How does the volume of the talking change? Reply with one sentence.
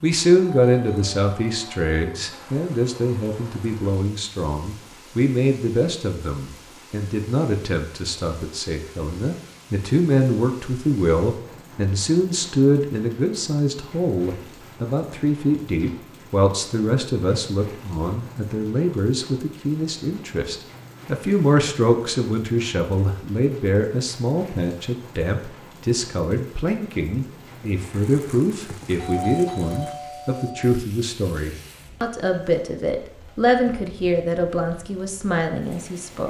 The loudness of the talking stays about the same.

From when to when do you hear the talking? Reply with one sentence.
You can hear the talking from 0.0 to 36.2 s.